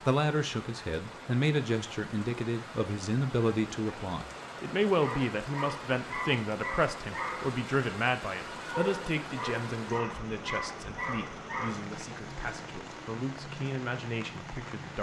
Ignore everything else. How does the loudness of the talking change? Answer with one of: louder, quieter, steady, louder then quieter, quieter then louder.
quieter.